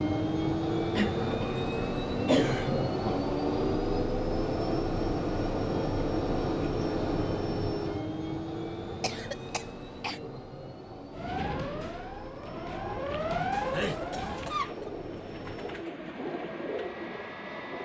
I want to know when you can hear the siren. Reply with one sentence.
The siren can be heard from 11.1 to 14.6 s.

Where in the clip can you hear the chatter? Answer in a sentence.
The chatter can't be heard in this clip.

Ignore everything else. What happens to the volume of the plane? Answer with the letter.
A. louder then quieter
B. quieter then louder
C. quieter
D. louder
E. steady
C.